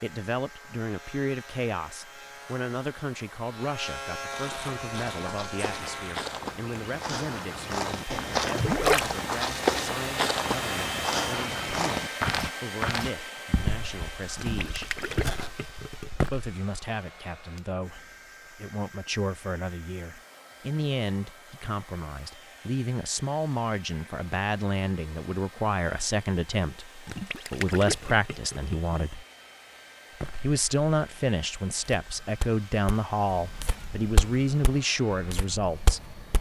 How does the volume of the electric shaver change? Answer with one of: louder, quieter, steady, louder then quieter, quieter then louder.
louder.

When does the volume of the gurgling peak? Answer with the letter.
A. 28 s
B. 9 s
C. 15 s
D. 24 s
B.